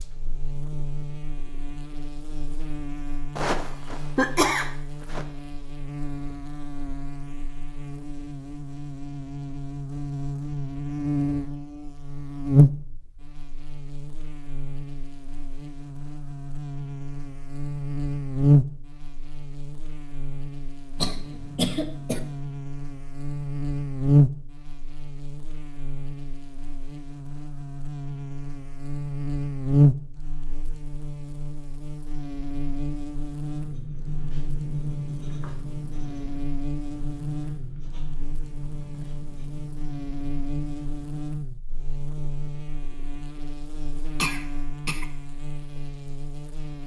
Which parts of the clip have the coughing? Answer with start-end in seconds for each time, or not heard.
3.4-5.2, 20.9-22.2, 44.1-45.0.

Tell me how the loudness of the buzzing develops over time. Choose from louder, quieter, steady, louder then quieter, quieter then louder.
louder then quieter.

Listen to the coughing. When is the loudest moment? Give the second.
4 s.